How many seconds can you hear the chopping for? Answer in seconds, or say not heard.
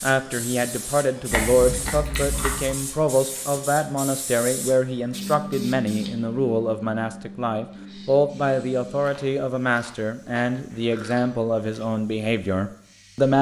not heard.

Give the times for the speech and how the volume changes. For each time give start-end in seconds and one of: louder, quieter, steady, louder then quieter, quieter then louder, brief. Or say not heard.
0.0-13.3 steady.